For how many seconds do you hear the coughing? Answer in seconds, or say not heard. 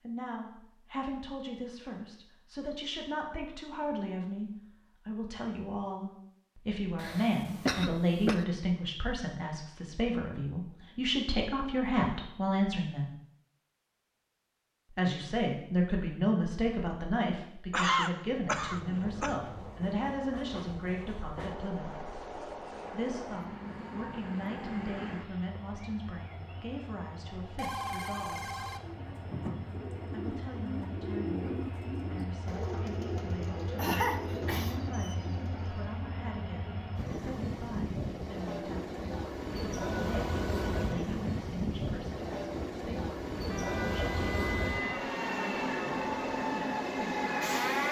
4 s.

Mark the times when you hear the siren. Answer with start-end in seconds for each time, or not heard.
43.5-47.8.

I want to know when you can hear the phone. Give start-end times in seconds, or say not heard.
27.6-28.8.